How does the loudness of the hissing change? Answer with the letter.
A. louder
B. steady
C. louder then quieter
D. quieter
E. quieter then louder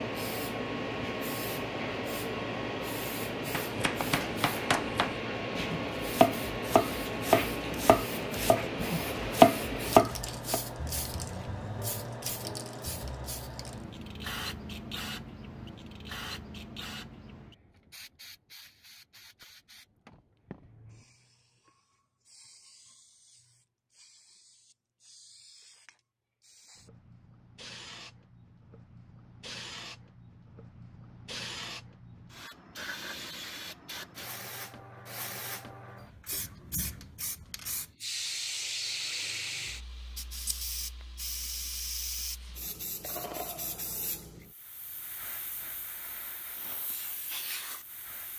E.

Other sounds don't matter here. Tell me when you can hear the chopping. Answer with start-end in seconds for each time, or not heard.
3.5-10.6.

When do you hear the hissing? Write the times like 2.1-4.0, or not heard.
0.0-48.3.